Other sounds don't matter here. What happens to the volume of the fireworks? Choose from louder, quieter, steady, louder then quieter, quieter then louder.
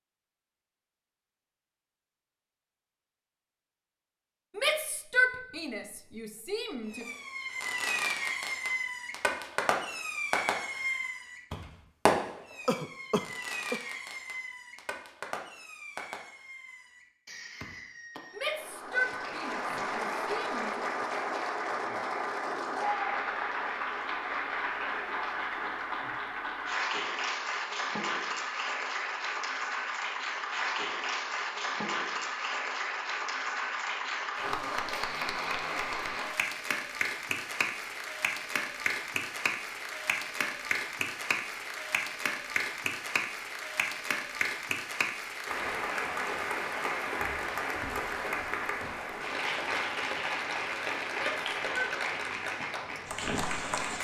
quieter.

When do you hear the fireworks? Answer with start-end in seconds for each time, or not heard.
6.9-18.6.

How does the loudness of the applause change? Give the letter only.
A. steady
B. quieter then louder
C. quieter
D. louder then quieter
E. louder
A.